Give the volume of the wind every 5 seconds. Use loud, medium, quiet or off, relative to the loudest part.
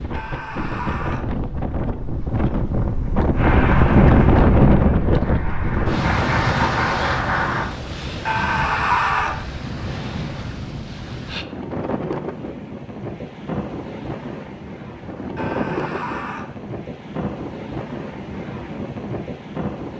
loud, medium, medium, medium.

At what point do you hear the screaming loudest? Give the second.
9 s.